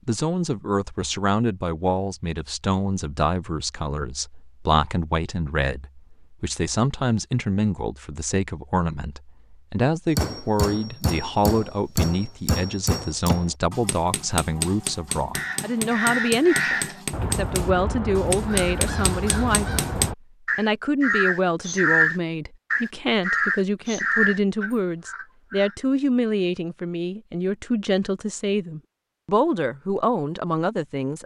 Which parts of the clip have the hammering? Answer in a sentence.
The hammering can be heard from 10.2 to 20.1 s.